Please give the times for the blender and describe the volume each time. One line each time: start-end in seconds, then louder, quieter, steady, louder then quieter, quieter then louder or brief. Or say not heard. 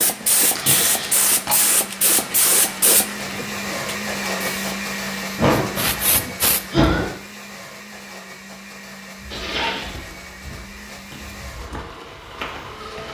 0.0-13.0 louder then quieter.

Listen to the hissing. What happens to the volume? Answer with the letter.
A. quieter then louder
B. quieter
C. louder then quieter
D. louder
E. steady
A.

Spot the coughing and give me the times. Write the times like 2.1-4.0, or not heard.
0.2-1.6, 5.3-7.0, 9.3-10.1.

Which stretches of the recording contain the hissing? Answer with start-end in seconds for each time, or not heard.
0.0-6.8.